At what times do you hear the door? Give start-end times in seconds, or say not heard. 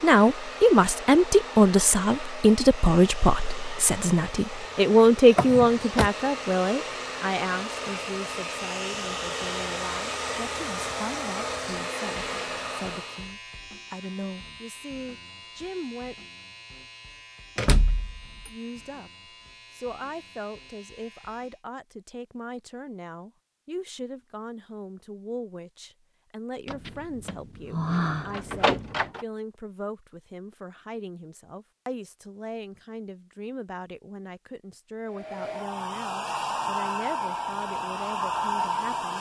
5.3-6.1, 17.6-18.5, 26.6-29.2.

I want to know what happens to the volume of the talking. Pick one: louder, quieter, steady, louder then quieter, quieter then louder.
quieter.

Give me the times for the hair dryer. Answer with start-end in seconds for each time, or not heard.
0.0-13.3, 35.0-39.1.